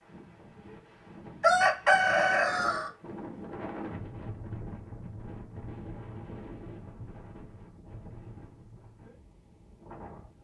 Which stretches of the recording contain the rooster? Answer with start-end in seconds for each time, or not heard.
1.4-2.9.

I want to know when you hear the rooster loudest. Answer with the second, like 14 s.
2 s.